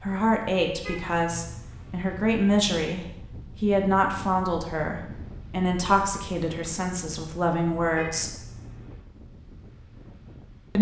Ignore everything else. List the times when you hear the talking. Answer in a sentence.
You can hear the talking from 0.0 to 8.3 s.